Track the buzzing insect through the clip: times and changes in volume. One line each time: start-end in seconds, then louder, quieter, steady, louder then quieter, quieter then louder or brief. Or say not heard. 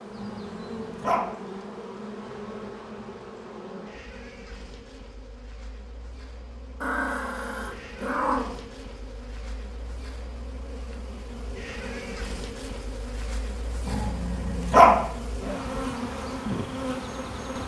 0.0-17.6 quieter then louder.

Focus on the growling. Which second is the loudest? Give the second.
15 s.